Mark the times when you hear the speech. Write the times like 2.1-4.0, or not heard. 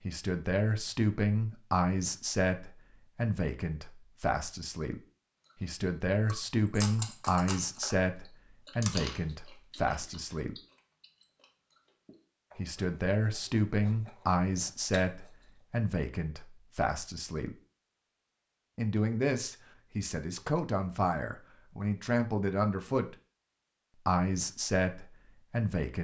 0.0-5.0, 5.6-10.6, 12.6-17.6, 18.8-23.1, 24.1-25.9.